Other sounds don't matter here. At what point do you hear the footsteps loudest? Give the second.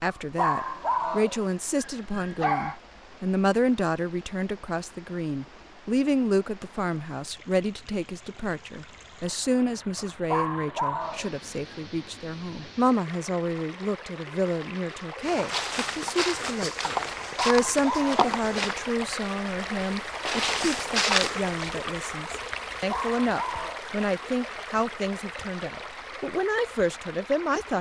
21 s.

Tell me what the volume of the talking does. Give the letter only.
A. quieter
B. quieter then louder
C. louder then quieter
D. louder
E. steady
E.